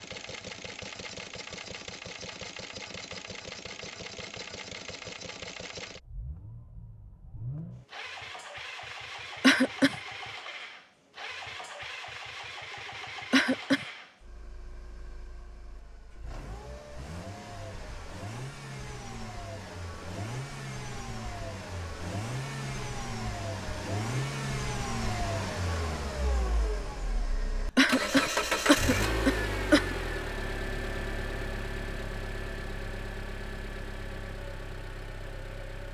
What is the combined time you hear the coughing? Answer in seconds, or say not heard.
3 s.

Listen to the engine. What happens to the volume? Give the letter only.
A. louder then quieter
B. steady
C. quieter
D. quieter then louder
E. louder
E.